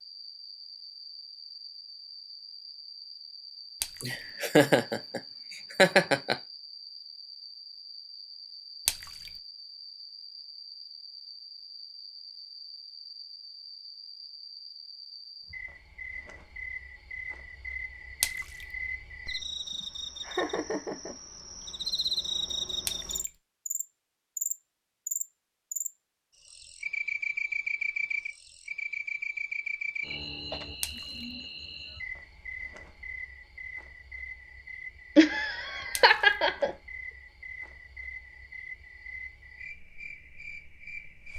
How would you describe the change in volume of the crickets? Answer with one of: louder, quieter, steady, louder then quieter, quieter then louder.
louder then quieter.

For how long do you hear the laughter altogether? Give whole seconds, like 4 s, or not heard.
5 s.